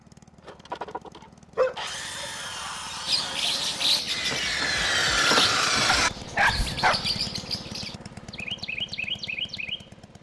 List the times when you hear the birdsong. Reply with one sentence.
The birdsong can be heard from 3.0 to 9.9 s.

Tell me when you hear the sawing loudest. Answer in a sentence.
The loudest moment of the sawing is at 5 seconds.